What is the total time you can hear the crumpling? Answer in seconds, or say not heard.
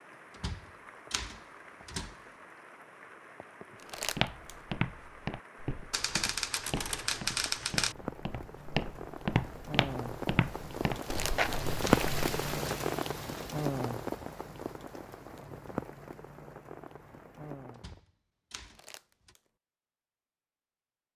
2 s.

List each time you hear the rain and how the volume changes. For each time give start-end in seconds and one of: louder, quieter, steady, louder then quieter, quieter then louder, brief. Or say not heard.
0.0-18.0 louder then quieter.